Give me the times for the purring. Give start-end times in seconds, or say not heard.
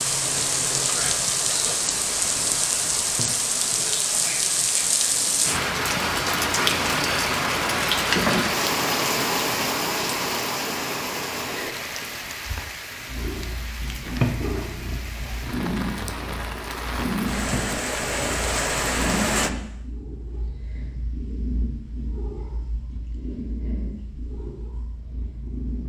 13.1-25.8.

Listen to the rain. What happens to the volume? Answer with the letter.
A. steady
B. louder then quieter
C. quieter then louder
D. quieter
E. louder
C.